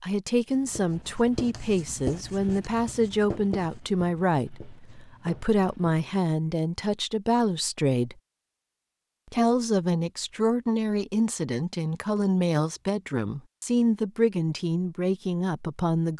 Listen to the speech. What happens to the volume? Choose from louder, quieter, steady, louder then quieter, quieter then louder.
steady.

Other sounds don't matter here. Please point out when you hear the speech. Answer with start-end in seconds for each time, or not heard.
0.0-8.2, 9.3-16.1.